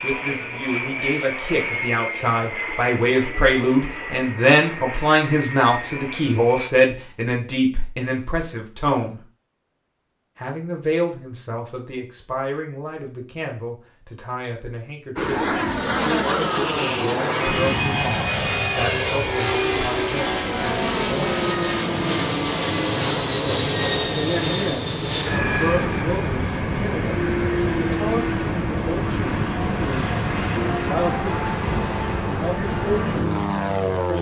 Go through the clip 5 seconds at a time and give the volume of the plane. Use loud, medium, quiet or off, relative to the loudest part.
medium, medium, off, loud, loud, loud, loud.